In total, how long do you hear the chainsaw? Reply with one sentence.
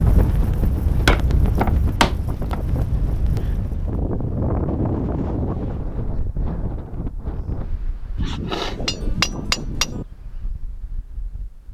You can't hear the chainsaw here.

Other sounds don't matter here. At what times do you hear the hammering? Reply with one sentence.
You can hear the hammering from 1.1 to 2.6 s and from 8.2 to 10.1 s.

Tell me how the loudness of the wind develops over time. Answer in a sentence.
The volume of the wind goes down.